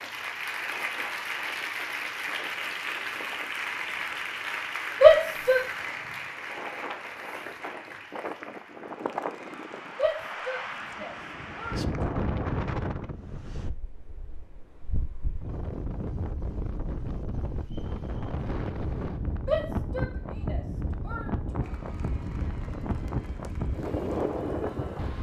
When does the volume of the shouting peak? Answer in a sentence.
The loudest moment of the shouting is at 5 seconds.